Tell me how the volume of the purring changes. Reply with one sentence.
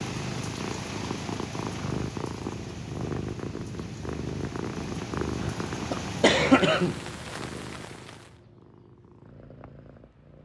The volume of the purring goes down.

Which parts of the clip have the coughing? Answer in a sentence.
You can hear the coughing from 5.4 to 7.0 s.